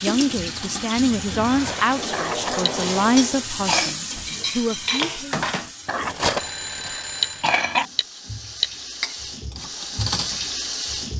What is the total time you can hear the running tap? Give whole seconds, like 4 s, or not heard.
11 s.